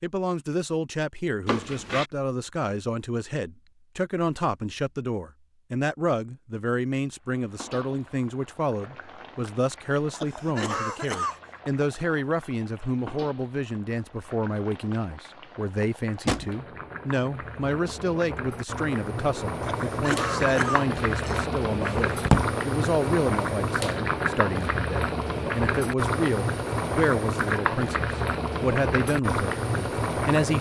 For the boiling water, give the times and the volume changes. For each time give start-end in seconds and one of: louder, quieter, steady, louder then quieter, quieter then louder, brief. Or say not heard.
7.2-30.5 louder.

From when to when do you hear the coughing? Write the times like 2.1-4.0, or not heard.
10.1-11.4, 19.6-21.4.